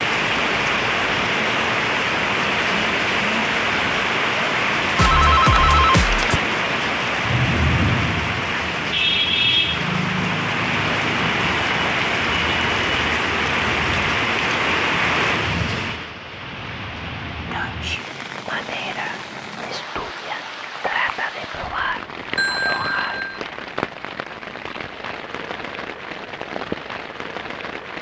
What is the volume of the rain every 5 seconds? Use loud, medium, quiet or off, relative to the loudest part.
loud, loud, loud, medium, medium, medium.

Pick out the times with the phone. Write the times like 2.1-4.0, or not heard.
5.0-6.4, 22.4-23.4.